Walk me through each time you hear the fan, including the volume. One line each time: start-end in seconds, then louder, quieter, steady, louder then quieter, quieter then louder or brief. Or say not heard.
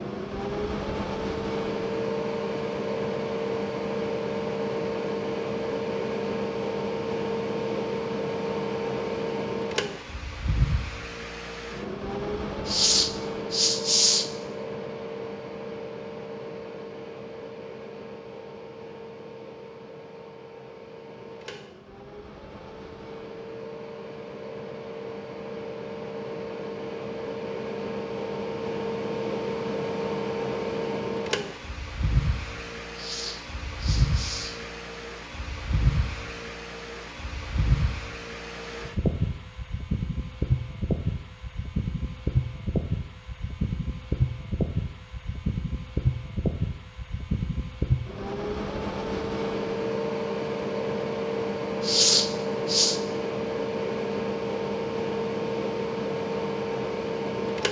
0.0-57.6 quieter then louder.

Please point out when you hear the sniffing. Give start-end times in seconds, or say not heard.
12.7-14.3, 33.0-34.5, 51.8-53.0.